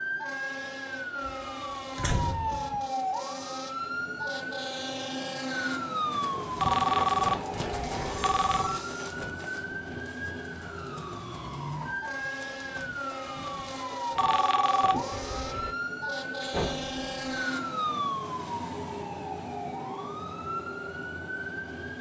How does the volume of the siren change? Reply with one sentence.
The volume of the siren stays about the same.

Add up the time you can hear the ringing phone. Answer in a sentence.
The ringing phone can be heard for 4 seconds in total.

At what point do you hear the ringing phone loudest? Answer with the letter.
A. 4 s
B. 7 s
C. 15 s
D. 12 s
B.